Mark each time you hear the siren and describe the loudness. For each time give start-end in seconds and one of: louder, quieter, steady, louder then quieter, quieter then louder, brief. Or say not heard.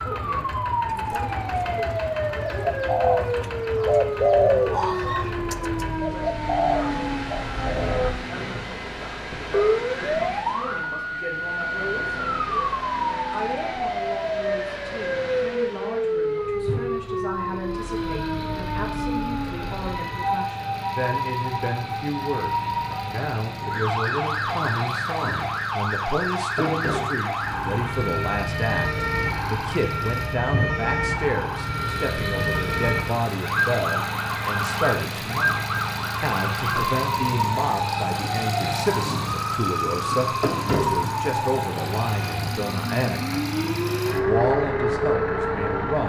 0.0-46.0 steady.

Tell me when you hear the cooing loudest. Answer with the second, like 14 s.
4 s.